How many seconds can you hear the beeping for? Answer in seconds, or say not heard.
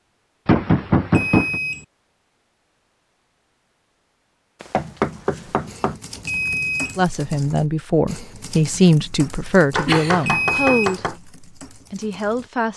2 s.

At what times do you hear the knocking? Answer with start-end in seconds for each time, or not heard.
0.5-1.6, 4.6-6.0, 9.8-11.2.